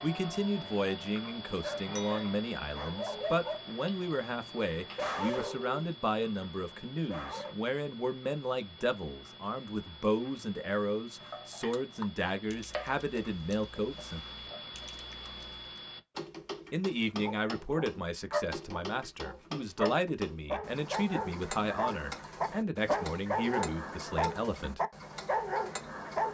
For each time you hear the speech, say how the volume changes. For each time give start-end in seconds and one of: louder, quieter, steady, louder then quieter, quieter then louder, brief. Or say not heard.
0.0-14.2 steady
16.7-24.8 steady.